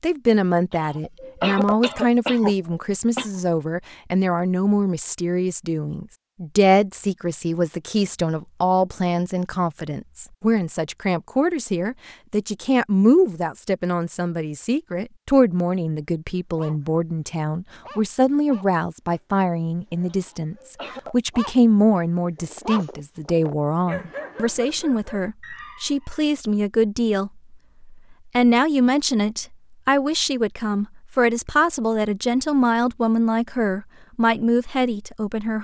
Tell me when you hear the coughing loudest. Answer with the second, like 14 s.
2 s.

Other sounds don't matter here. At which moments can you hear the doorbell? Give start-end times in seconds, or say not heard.
not heard.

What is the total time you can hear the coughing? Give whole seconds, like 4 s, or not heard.
4 s.